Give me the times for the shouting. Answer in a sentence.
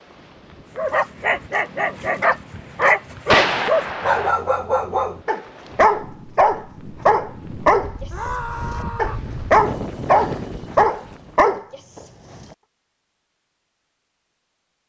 You can hear the shouting from 8.1 to 9.3 s.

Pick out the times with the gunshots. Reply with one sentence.
The gunshots can be heard from 3.2 to 4.3 s.